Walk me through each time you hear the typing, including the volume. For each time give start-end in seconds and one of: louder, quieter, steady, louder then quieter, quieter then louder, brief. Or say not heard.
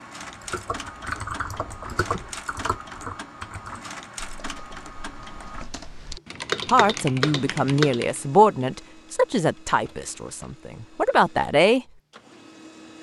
0.2-8.2 quieter then louder.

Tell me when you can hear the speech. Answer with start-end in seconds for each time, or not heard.
6.7-11.8.